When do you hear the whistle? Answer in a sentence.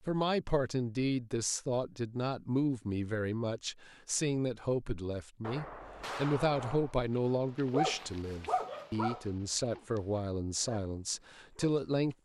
The whistle can't be heard in this clip.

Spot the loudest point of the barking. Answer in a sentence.
The loudest moment of the barking is at 8 seconds.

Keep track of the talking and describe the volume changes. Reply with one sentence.
The loudness of the talking stays about the same.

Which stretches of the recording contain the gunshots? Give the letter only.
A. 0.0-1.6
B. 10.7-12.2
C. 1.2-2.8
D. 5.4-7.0
D.